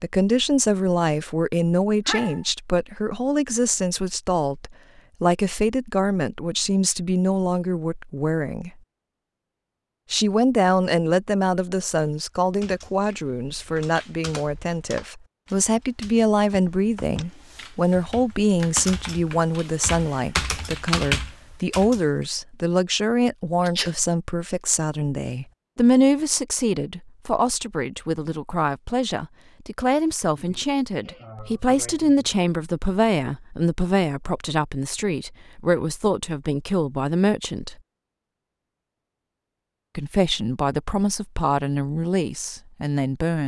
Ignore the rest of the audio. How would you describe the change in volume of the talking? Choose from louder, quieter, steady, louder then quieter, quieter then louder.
steady.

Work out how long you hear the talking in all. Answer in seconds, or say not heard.
40 s.